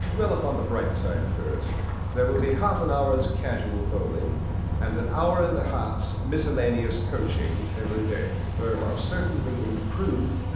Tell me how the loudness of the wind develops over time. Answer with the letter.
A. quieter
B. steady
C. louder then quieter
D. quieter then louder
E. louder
B.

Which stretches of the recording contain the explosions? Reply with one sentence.
The explosions can't be heard in this clip.